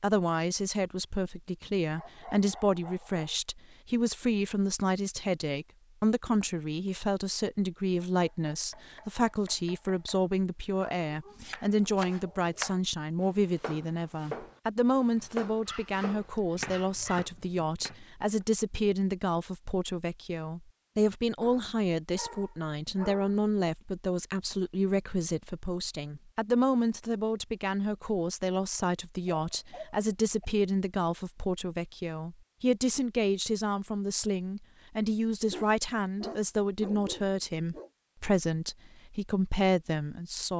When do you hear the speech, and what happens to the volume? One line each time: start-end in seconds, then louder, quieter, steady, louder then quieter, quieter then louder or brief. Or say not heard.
0.0-40.5 steady.